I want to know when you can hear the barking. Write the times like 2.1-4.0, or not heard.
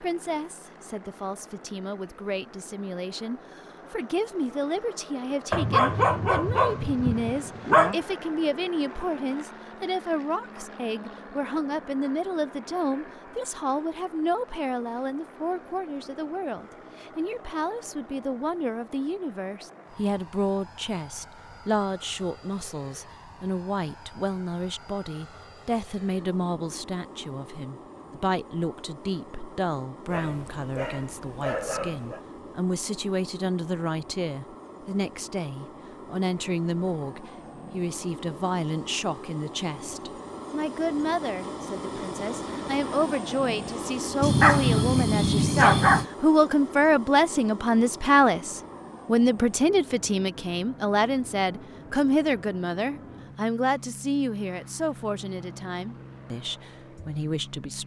5.5-8.0, 30.1-32.2, 44.2-46.0.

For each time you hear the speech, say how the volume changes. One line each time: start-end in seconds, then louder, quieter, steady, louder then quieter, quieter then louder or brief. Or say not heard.
0.0-57.8 louder.